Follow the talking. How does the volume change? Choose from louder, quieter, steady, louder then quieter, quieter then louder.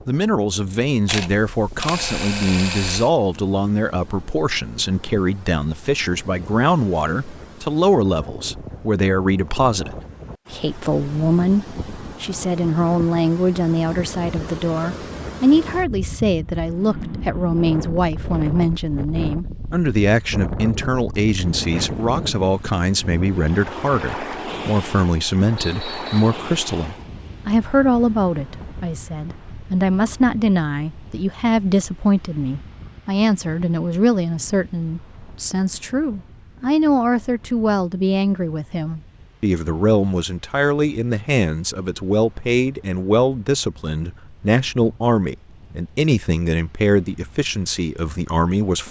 steady.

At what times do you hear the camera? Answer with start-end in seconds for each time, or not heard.
1.1-3.1.